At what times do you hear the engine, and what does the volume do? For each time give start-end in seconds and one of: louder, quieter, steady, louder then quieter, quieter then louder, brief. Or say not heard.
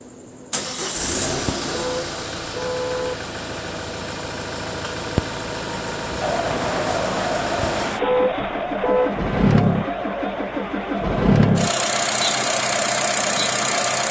0.0-14.0 louder.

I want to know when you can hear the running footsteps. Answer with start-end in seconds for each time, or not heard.
not heard.